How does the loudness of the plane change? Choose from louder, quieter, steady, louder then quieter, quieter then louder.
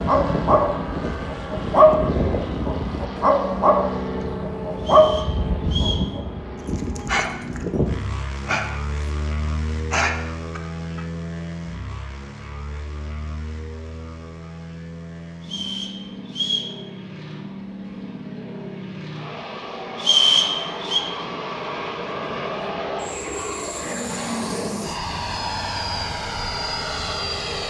quieter then louder.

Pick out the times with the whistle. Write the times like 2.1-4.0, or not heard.
4.8-6.1, 15.4-16.8, 19.9-21.0.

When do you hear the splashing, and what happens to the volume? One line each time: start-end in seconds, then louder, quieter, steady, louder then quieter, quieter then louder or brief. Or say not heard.
not heard.